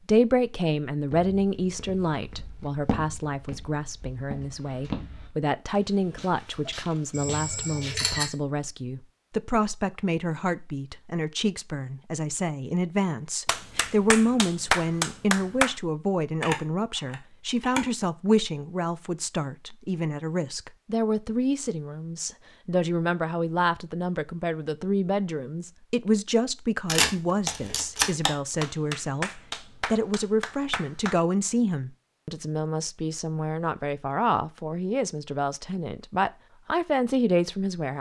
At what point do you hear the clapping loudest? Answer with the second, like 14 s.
15 s.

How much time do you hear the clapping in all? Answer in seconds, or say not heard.
5 s.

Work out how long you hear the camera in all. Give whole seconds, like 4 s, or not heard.
4 s.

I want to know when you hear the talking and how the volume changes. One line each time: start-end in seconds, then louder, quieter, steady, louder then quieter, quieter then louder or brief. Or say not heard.
0.1-37.9 steady.